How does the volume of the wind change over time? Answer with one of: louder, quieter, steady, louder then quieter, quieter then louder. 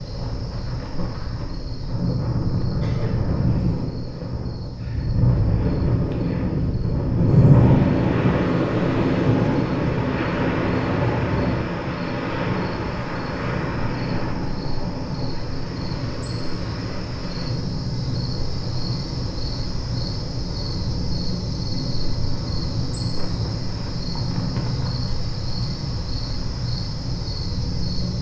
louder then quieter.